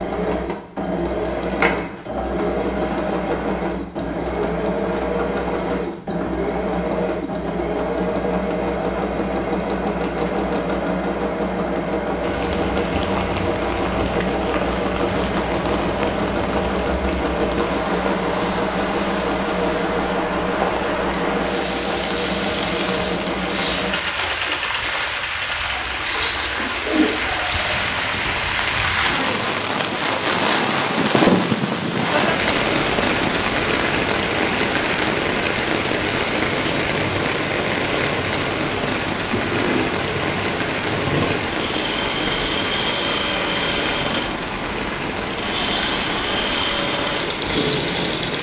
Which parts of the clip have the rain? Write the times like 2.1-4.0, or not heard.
12.2-48.3.